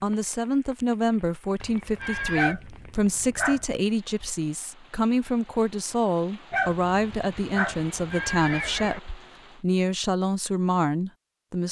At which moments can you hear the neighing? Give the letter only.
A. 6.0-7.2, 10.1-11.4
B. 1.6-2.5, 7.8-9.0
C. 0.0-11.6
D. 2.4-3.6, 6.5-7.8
B.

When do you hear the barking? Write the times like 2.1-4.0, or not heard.
2.4-3.6, 6.5-7.8.